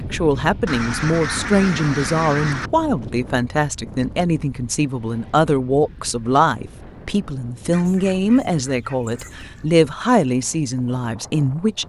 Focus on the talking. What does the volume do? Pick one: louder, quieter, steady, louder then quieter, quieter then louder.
steady.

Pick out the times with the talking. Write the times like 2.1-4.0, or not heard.
0.0-11.8.